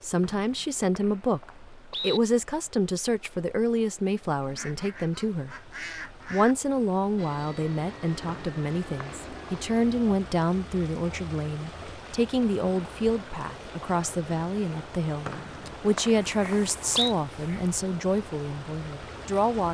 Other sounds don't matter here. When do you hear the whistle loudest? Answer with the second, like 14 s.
17 s.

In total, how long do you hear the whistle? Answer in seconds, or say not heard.
5 s.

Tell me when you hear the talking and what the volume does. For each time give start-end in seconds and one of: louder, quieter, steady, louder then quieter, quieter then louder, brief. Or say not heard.
0.0-19.7 steady.